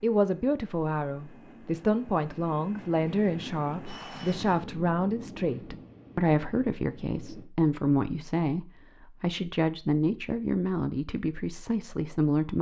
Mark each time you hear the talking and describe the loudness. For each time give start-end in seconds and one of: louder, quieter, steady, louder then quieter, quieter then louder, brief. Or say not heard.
0.0-12.5 steady.